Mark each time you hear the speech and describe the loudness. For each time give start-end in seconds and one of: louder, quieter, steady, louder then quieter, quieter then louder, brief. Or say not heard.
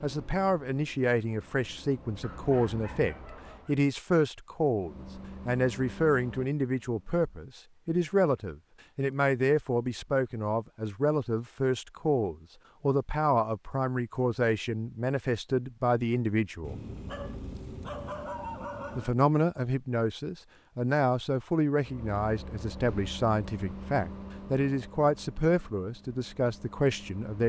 0.0-16.8 steady
18.9-27.4 steady.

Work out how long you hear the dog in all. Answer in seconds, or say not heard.
4 s.